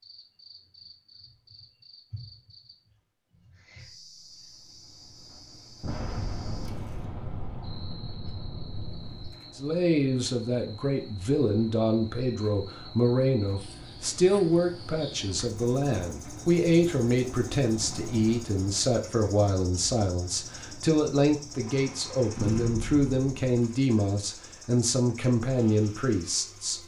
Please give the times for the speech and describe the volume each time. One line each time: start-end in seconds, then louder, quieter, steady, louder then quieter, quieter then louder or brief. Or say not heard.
9.6-26.8 steady.